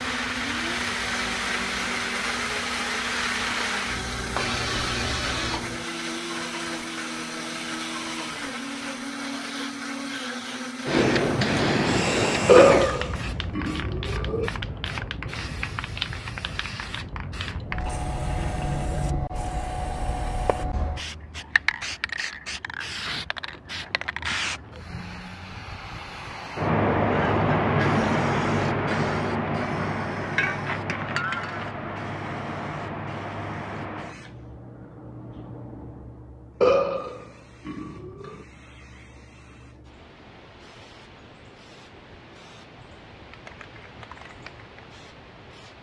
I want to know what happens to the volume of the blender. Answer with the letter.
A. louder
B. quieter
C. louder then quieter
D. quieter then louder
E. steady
E.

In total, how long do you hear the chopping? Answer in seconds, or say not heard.
not heard.